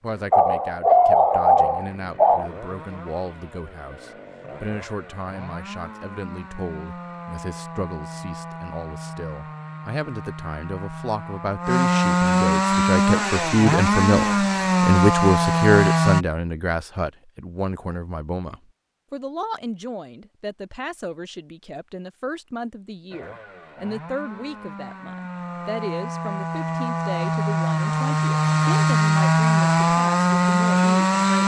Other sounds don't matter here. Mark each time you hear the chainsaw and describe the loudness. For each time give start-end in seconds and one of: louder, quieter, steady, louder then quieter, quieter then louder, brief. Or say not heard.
0.0-16.2 louder
23.1-31.4 louder.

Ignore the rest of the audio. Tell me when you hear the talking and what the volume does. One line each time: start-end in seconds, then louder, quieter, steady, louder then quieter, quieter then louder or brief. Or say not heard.
0.0-31.4 louder then quieter.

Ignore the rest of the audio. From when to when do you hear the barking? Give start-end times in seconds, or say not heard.
0.3-2.5.